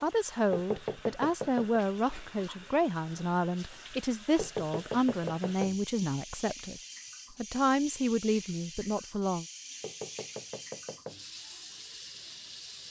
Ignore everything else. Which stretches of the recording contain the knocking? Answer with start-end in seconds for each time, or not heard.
0.5-1.8, 4.3-5.8, 9.8-11.2.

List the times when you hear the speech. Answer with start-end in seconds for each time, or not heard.
0.0-9.4.